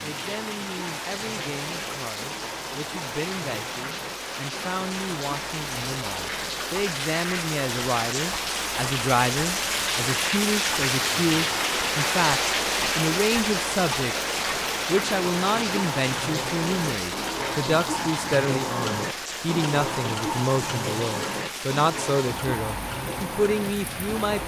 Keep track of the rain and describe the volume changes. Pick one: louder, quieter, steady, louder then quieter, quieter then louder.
louder then quieter.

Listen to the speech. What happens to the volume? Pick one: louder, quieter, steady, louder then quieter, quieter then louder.
louder.